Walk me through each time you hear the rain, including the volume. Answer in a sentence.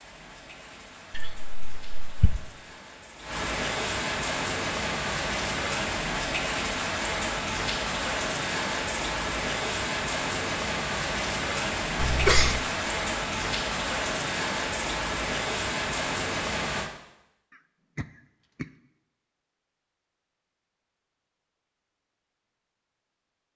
You can hear the rain from 0.0 to 16.9 s, getting louder.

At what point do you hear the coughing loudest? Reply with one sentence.
The loudest moment of the coughing is at 12 seconds.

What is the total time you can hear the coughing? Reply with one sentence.
You can hear the coughing for 3 seconds altogether.